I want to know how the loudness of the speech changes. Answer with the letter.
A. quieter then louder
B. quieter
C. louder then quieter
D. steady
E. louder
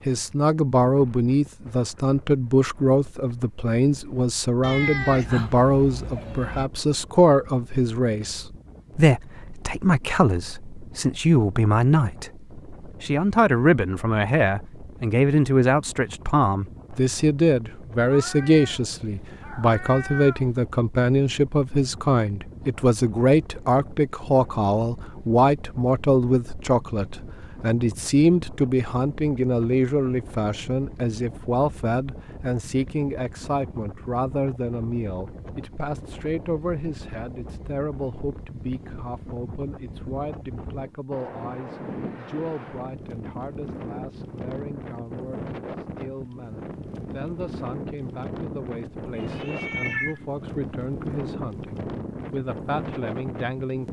B.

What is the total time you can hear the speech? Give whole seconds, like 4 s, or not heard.
54 s.